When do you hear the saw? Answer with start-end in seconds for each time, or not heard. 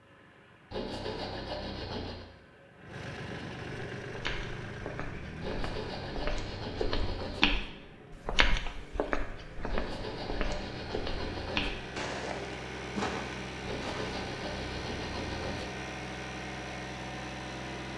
0.7-2.2, 5.4-7.5, 9.7-11.7, 13.7-15.7.